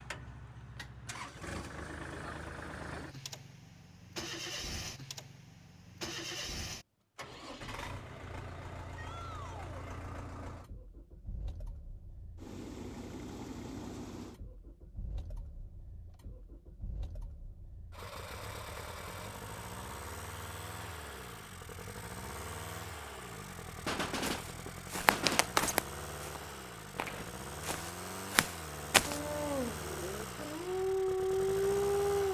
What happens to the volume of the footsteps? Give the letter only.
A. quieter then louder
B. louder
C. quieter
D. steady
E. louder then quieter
A.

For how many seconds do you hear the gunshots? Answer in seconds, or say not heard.
2 s.